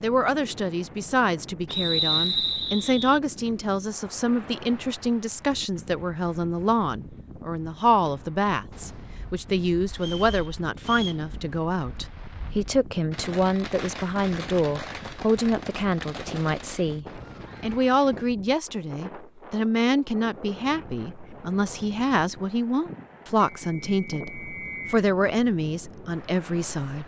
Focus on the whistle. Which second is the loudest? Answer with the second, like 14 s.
2 s.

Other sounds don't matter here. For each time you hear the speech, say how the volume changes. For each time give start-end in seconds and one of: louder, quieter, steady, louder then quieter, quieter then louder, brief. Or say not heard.
0.0-27.0 steady.